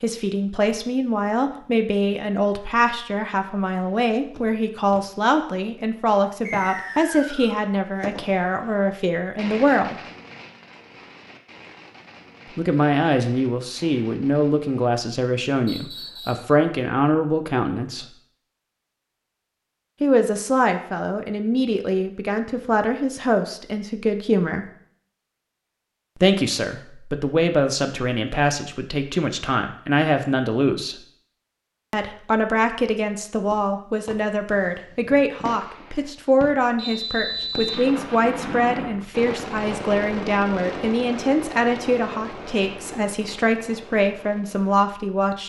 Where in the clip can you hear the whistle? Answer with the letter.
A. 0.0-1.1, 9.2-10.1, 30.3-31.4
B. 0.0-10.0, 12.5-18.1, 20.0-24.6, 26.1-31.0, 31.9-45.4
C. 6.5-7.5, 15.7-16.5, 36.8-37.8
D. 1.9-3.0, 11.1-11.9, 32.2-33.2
C.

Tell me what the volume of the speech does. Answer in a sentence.
The volume of the speech stays about the same.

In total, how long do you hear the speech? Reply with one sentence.
The speech can be heard for 39 seconds in total.